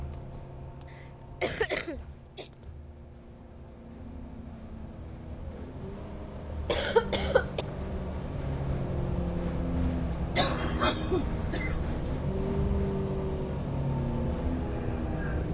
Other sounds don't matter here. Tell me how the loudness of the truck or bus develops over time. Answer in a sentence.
The volume of the truck or bus goes up.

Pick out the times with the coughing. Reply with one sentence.
You can hear the coughing from 0.9 to 2.5 s, from 6.5 to 7.7 s and from 10.3 to 11.8 s.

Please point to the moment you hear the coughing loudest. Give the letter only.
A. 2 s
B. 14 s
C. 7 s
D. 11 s
C.